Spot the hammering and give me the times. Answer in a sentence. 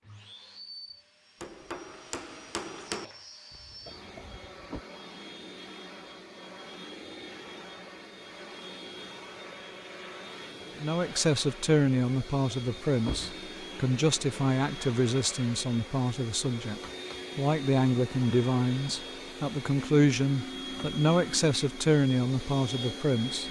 You can hear the hammering from 1.4 to 3.0 s.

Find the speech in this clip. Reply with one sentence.
The speech can be heard from 10.8 to 23.4 s.